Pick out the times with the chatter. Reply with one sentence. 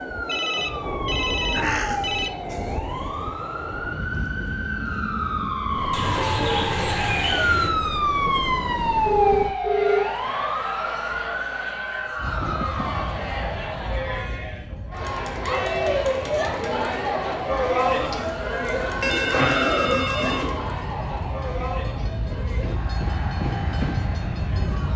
You can hear the chatter from 9.6 to 24.9 s.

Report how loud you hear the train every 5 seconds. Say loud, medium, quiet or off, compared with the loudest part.
loud, loud, medium, medium, loud.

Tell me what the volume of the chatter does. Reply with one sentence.
The loudness of the chatter goes up, then down.